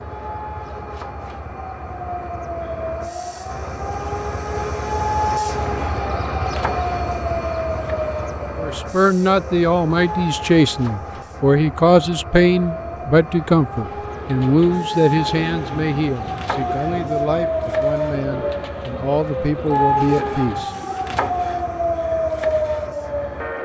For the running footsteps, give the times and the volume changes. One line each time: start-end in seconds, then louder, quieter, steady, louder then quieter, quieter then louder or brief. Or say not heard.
not heard.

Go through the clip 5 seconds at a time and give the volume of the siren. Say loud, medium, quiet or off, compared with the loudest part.
medium, loud, medium, loud, loud.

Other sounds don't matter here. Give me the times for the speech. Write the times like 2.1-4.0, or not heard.
8.6-20.7.